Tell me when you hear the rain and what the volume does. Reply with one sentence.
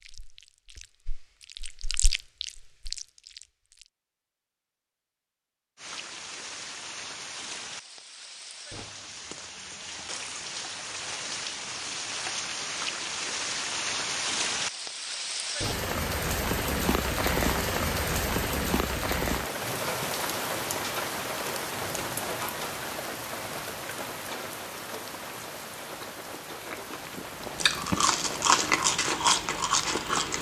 You can hear the rain from 5.8 to 30.3 s, getting louder then quieter.